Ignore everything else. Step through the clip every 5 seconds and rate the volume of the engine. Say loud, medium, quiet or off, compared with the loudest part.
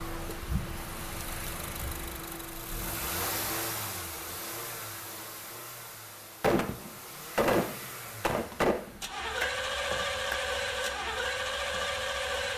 medium, medium, loud.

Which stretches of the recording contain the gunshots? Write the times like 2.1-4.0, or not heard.
6.4-10.3.